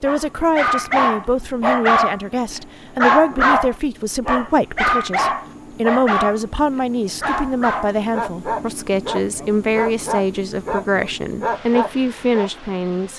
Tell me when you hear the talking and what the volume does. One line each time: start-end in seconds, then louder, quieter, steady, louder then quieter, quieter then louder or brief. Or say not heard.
0.0-13.1 steady.